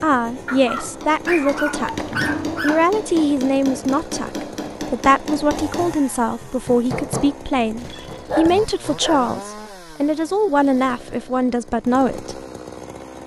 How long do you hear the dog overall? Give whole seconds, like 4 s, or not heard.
4 s.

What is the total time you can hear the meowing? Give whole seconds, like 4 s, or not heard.
2 s.